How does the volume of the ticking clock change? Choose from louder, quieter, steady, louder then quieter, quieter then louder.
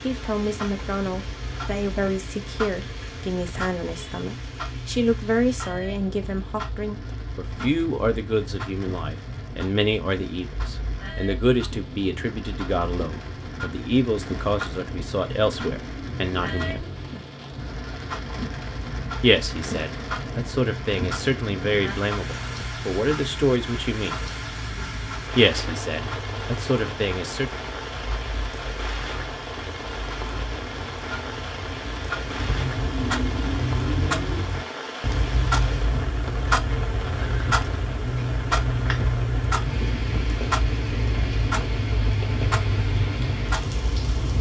louder.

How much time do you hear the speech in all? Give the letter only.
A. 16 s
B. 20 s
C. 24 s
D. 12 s
C.